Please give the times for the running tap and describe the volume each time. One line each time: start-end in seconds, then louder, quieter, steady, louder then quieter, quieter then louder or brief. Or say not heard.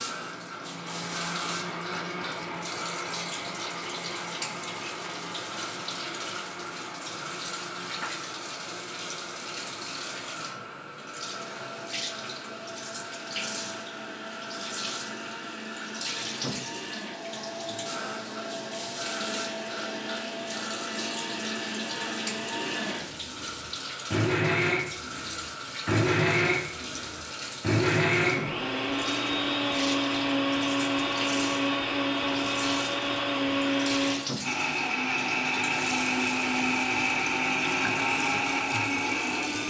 0.0-39.6 steady.